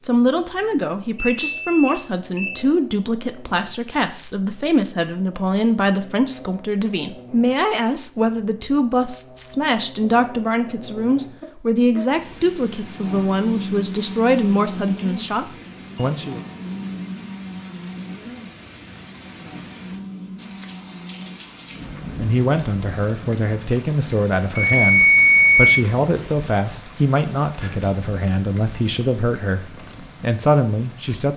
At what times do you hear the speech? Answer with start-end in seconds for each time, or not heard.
0.0-16.4, 22.1-31.3.